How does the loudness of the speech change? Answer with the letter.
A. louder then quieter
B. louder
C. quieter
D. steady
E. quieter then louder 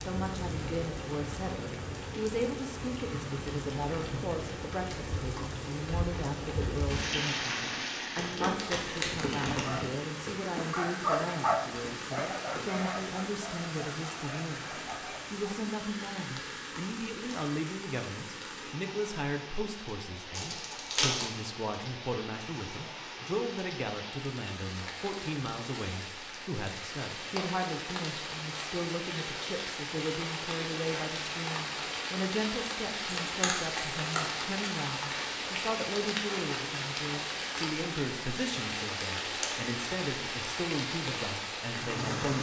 D.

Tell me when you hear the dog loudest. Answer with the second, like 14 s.
11 s.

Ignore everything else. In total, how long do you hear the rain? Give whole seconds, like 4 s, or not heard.
42 s.